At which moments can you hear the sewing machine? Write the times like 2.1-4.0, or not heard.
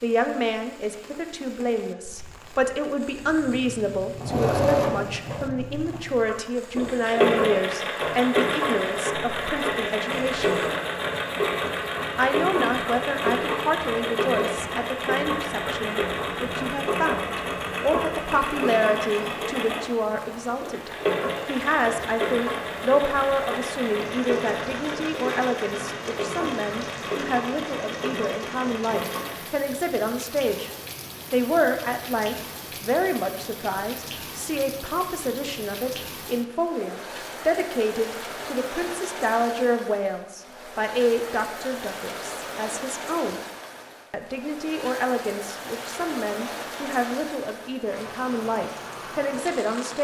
3.2-29.5.